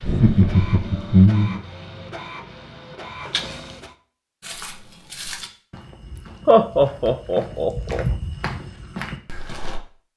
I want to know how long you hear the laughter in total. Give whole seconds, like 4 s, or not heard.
3 s.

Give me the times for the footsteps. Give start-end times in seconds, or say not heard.
4.4-9.8.